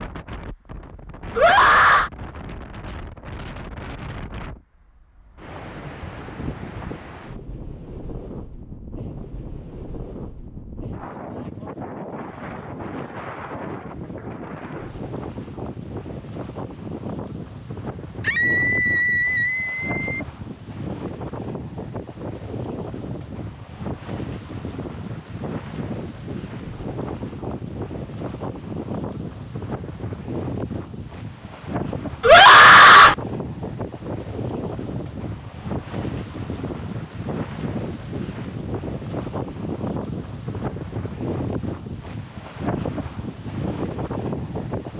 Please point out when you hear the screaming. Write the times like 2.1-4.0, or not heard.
1.4-2.1, 18.2-20.2, 32.2-33.1.